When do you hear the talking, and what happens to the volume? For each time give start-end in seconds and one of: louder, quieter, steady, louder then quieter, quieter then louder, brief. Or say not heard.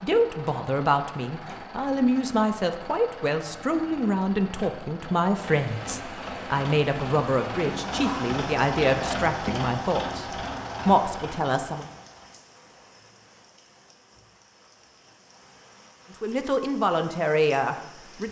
0.0-10.2 steady
10.8-11.8 brief
16.2-18.2 brief.